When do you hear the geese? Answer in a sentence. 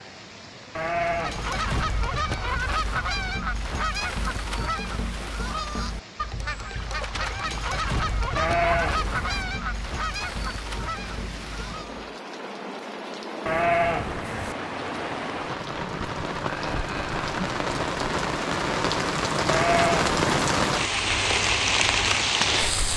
You can hear the geese from 0.9 to 12.2 s.